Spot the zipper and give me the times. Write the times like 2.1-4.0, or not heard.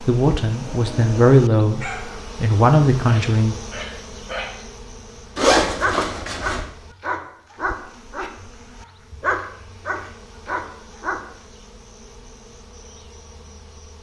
5.3-6.7.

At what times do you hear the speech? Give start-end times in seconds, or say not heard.
0.0-3.5.